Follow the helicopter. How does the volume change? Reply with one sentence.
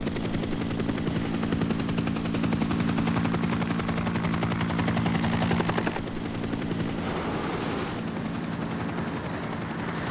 The loudness of the helicopter goes down.